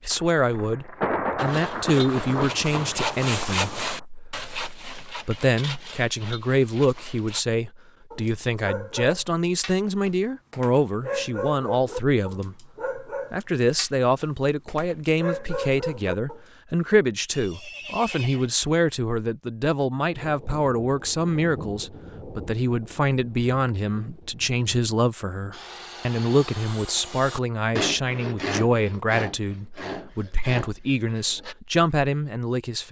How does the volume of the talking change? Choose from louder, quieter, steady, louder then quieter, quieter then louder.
steady.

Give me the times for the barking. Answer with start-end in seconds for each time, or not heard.
8.1-16.4.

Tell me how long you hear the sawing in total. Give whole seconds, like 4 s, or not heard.
12 s.